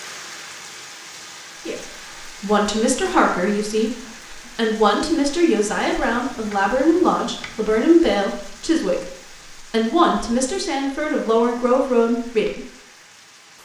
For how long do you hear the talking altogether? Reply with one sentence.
You can hear the talking for 11 seconds altogether.